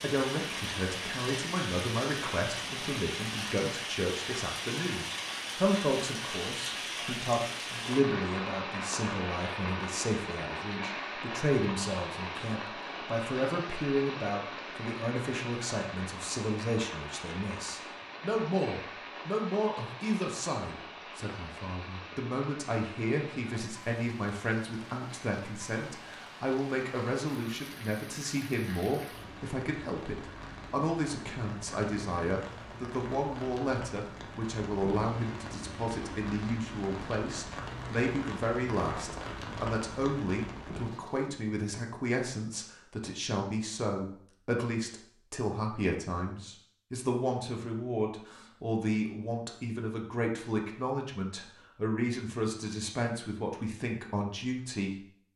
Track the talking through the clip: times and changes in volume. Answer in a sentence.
The talking can be heard from 0.0 to 55.0 s, at a steady volume.